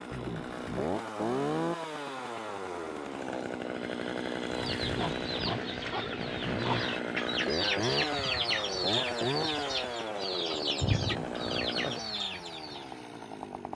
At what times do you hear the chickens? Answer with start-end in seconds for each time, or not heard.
4.5-13.0.